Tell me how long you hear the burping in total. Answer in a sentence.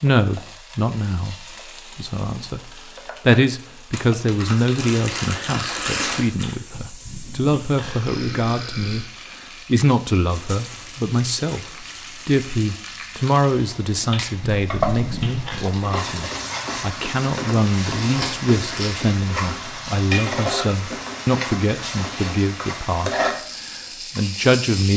The burping can be heard for 4 seconds in total.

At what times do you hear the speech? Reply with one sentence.
The speech can be heard from 0.0 to 9.1 s and from 9.7 to 24.9 s.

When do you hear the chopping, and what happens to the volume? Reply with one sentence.
You can't hear the chopping here.